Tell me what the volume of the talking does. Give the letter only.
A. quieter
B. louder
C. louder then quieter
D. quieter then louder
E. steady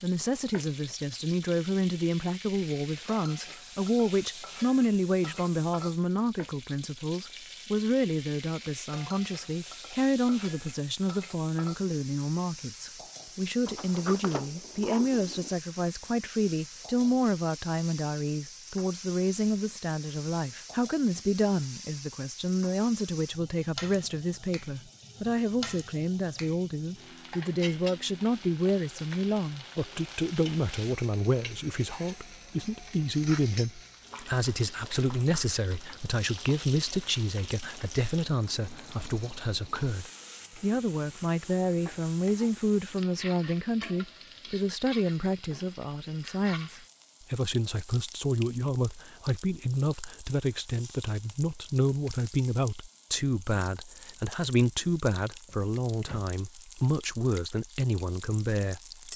E.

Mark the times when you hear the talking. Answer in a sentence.
The talking can be heard from 0.0 to 59.0 s.